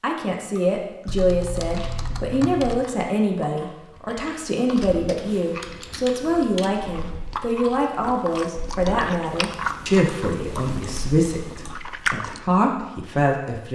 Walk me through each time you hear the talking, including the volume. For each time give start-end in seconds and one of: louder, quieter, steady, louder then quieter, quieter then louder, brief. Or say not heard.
0.0-13.7 steady.